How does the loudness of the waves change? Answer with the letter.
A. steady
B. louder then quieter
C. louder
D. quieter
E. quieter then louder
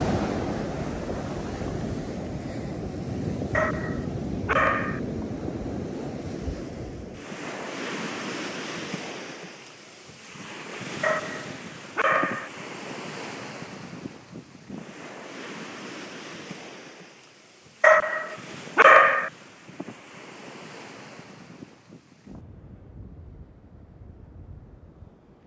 D.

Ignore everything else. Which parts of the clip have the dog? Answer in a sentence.
You can hear the dog from 3.5 to 5.0 s, from 11.0 to 12.5 s and from 17.8 to 19.3 s.